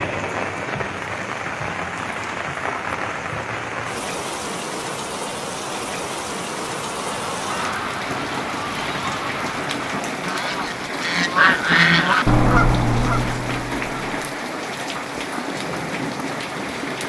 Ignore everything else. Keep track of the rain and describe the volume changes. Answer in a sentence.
The loudness of the rain stays about the same.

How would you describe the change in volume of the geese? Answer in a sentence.
The loudness of the geese goes up, then down.